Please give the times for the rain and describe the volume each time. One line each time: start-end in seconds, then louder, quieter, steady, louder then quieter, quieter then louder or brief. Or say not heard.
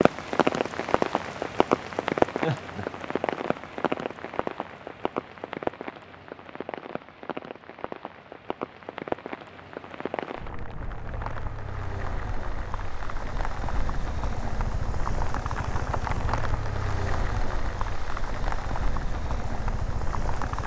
0.0-20.6 quieter.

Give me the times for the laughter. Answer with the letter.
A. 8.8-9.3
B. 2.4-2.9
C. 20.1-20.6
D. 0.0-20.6
B.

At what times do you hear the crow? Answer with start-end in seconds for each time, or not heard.
not heard.